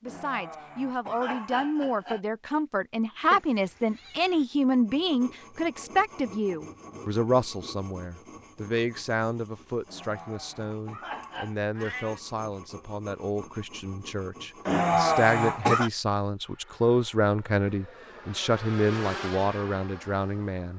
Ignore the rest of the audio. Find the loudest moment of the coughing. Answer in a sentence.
The loudest moment of the coughing is at 15 seconds.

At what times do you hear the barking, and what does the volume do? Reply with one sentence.
You can't hear the barking here.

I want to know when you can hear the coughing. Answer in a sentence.
The coughing can be heard from 0.1 to 2.2 s, from 9.8 to 11.6 s and from 14.7 to 15.9 s.